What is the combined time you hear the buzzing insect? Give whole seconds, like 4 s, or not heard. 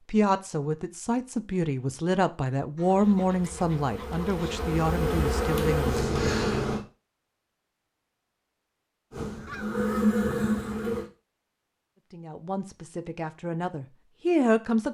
6 s.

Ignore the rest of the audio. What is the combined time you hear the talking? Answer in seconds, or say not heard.
9 s.